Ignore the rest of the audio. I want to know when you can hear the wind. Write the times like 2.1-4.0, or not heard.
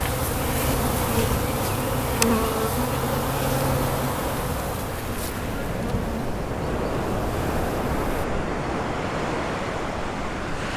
0.1-10.7.